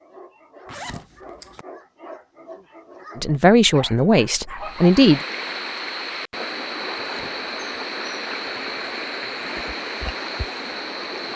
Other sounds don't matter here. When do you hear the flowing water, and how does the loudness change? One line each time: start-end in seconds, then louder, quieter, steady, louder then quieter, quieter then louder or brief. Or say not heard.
4.6-11.3 steady.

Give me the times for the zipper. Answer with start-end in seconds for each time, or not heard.
0.7-1.6, 7.0-7.4.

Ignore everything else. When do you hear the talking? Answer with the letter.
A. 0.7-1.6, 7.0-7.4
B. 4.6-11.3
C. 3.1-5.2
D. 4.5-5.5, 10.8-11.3
C.